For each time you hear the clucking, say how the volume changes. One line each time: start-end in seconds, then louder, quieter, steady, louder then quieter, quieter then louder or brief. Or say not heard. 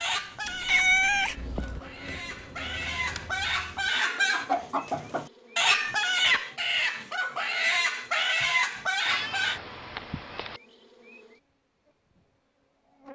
0.0-9.6 louder.